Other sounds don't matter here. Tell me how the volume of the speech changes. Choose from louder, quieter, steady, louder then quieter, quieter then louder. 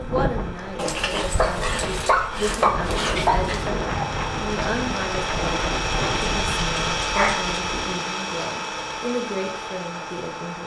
steady.